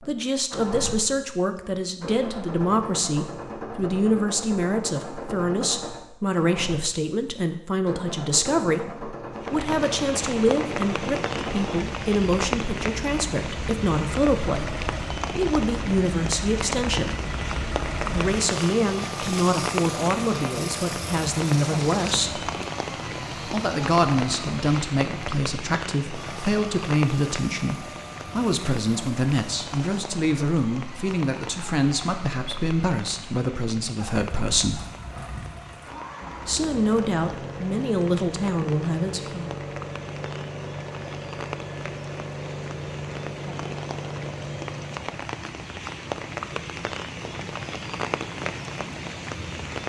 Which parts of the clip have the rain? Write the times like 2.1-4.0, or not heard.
9.3-49.8.